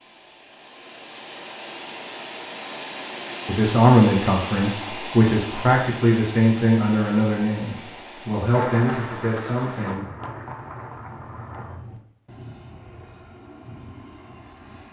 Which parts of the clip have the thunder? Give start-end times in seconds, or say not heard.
8.5-11.8.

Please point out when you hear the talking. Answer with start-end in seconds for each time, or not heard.
3.5-10.1.